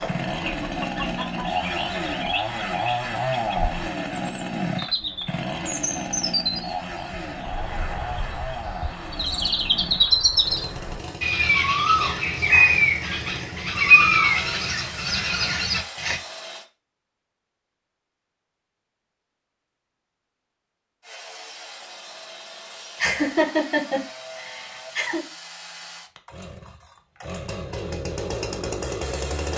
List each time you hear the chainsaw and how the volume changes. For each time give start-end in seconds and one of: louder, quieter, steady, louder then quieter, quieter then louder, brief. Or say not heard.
0.0-16.6 quieter
21.0-29.5 louder.